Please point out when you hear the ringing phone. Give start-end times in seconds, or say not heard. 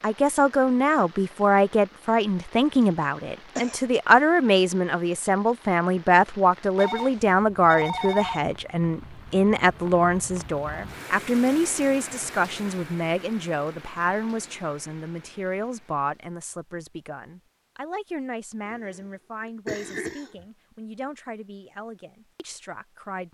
6.8-8.4.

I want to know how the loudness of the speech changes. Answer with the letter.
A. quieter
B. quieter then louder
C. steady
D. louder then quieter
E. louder
A.